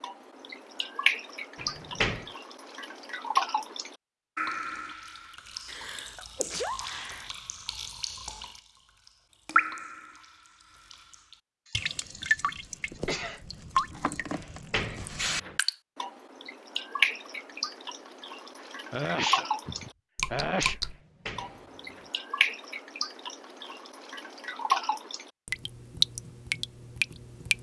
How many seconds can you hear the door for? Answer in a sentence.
The door can be heard for 3 seconds in total.